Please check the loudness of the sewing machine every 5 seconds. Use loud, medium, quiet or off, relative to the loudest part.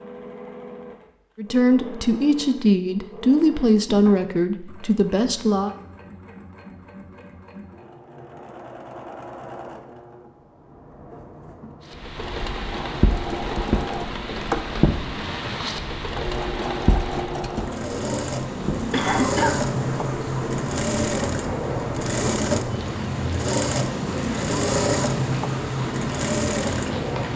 quiet, quiet, medium, loud, loud, loud.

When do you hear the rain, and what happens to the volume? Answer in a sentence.
The rain can be heard from 11.8 to 27.3 s, getting quieter.